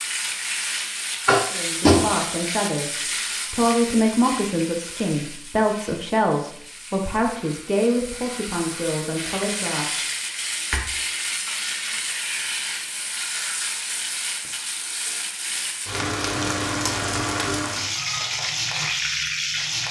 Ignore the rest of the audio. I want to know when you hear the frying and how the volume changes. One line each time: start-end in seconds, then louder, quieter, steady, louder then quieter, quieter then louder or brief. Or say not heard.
0.0-19.8 quieter then louder.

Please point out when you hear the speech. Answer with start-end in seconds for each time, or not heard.
1.4-10.0.